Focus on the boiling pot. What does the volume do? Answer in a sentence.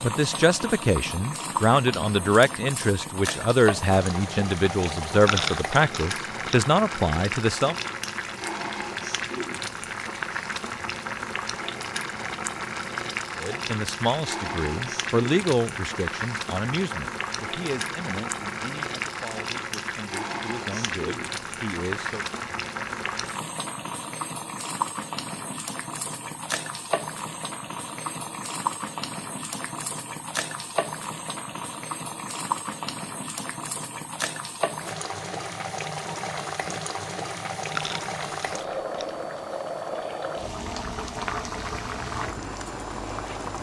The loudness of the boiling pot stays about the same.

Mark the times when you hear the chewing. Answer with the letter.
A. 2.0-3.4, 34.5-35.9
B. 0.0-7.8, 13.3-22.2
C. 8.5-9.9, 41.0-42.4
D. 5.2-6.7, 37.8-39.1
D.